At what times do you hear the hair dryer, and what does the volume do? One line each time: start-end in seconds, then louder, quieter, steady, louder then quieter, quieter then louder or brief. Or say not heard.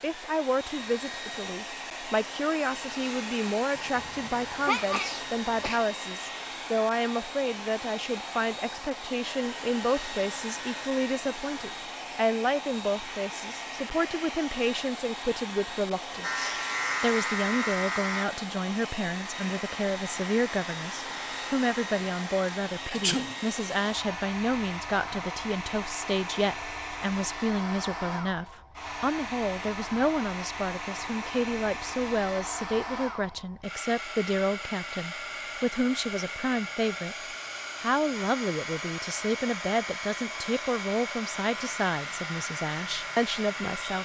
0.0-44.0 steady.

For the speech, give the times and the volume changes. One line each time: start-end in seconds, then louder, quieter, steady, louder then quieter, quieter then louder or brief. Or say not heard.
0.0-37.1 steady
37.8-44.0 steady.